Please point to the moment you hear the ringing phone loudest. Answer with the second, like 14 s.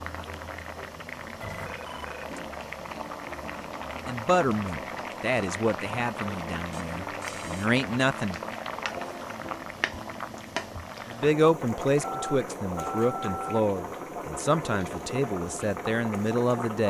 13 s.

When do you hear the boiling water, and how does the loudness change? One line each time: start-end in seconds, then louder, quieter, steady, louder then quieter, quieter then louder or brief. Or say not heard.
0.0-16.8 steady.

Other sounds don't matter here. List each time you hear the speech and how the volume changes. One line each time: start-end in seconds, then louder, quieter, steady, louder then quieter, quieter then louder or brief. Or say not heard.
4.0-8.6 quieter then louder
11.1-16.8 steady.